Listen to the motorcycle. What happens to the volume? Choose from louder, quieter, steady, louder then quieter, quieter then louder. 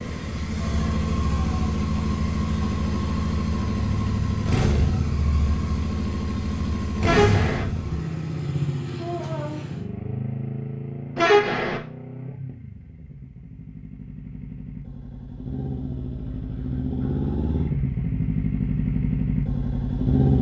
quieter then louder.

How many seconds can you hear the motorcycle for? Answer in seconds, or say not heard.
20 s.